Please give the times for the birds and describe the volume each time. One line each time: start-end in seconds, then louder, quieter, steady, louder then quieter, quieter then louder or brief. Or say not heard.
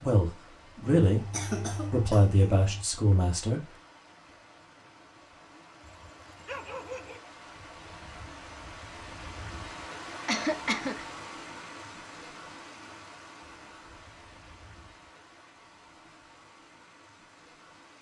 not heard.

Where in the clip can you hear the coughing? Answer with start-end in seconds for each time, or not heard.
1.1-2.9, 10.2-11.1.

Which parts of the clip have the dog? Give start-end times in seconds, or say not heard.
5.8-7.2.